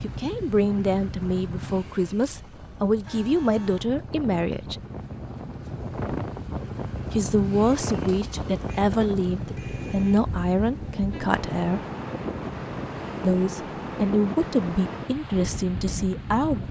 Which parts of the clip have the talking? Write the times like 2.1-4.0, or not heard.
0.0-4.8, 7.1-11.8, 13.2-16.6.